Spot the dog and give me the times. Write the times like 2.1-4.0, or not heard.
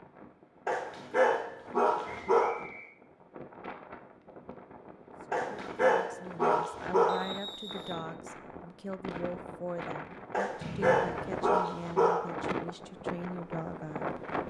0.7-2.6, 5.3-7.3, 10.3-12.3.